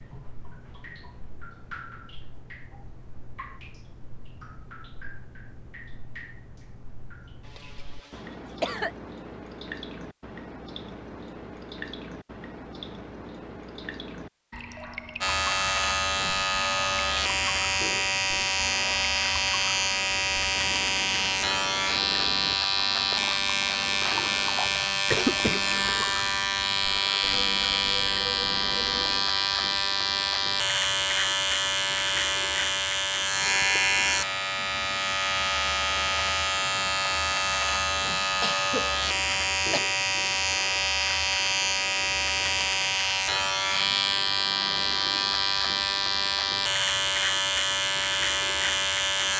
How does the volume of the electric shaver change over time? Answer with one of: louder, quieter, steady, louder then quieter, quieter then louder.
steady.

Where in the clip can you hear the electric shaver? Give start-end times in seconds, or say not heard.
15.2-49.3.